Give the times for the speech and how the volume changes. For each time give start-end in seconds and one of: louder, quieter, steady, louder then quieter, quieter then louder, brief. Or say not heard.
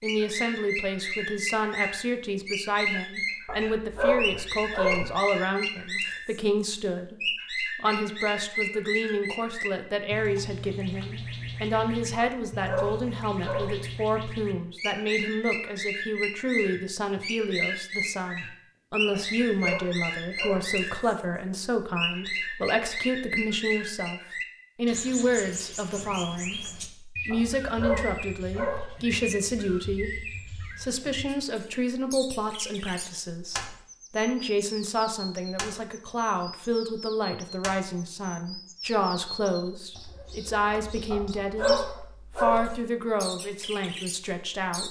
0.0-44.8 steady.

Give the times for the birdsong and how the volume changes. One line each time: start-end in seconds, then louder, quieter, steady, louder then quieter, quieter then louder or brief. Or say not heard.
0.0-21.1 steady
21.9-44.8 quieter.